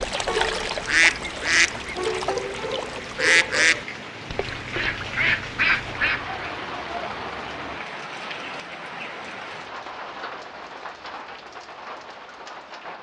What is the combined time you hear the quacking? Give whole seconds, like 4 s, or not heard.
6 s.